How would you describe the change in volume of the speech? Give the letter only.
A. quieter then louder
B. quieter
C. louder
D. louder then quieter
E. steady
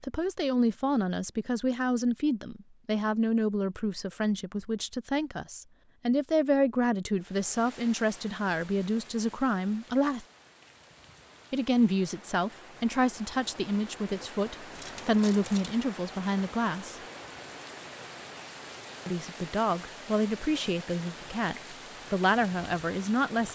E.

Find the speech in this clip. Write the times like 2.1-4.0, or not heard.
0.0-10.2, 11.5-16.9, 19.1-23.5.